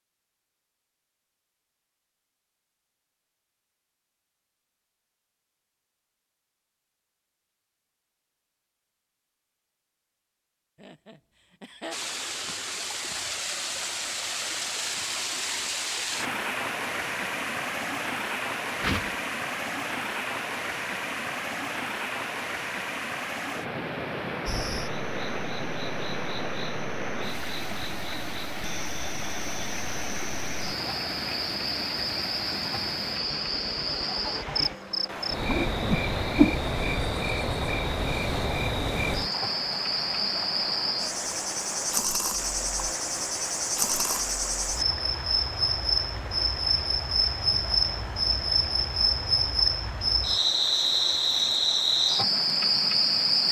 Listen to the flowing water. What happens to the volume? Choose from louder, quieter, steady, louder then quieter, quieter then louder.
quieter.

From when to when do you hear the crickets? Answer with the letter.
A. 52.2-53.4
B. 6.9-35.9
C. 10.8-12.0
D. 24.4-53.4
D.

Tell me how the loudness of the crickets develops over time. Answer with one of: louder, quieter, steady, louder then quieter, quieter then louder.
louder.